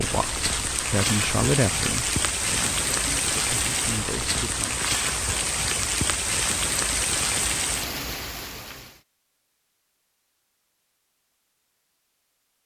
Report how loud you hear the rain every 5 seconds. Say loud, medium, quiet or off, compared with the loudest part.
loud, loud, off.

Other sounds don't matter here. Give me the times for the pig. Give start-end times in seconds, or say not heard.
not heard.